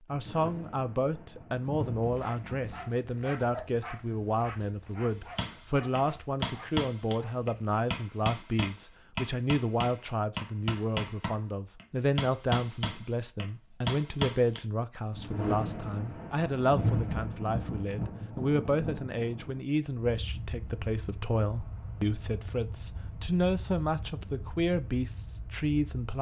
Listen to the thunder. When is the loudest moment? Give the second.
17 s.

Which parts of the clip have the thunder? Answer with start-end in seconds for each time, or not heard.
0.1-2.9, 15.1-19.6.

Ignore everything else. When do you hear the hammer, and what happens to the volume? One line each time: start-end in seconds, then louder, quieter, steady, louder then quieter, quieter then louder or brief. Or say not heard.
5.3-14.6 steady.